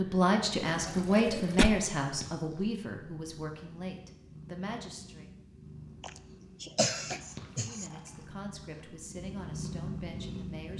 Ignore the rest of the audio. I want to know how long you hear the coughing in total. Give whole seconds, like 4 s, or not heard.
3 s.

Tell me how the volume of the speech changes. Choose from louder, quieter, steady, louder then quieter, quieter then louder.
quieter.